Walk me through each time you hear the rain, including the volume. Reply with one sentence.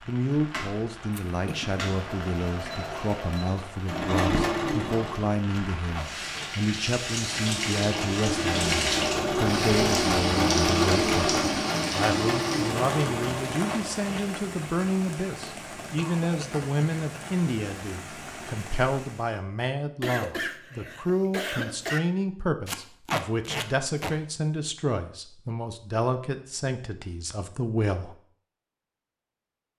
You can hear the rain from 0.0 to 19.4 s, getting louder then quieter.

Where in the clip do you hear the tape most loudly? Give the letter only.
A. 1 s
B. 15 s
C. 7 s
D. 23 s
D.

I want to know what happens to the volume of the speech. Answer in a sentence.
The volume of the speech stays about the same.